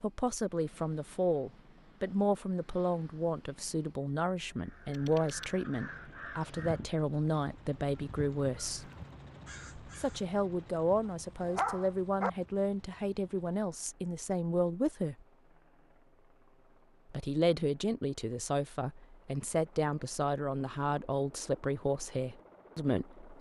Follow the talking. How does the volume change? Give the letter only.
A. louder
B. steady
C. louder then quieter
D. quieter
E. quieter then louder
B.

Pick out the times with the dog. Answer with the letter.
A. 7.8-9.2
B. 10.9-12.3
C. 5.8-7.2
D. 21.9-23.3
B.